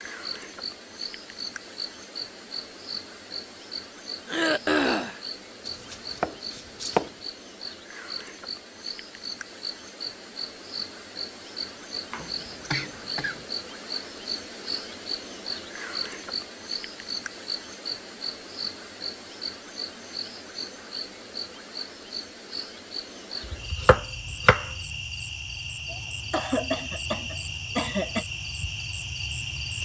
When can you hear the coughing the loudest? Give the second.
5 s.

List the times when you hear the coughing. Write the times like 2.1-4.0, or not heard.
4.2-5.2, 12.2-13.4, 25.9-28.2.